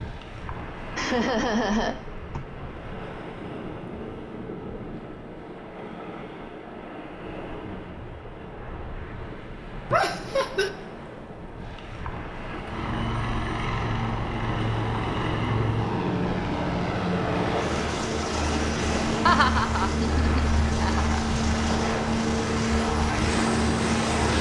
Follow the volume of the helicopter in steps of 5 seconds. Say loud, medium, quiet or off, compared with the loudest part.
off, off, loud, loud, loud.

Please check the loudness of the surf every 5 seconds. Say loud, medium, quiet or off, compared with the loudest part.
medium, medium, medium, loud, loud.